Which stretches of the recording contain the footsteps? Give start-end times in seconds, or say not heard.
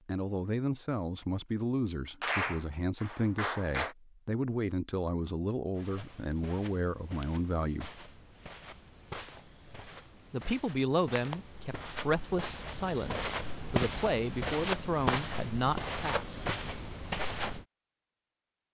5.8-17.6.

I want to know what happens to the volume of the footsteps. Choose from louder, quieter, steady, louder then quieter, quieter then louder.
louder.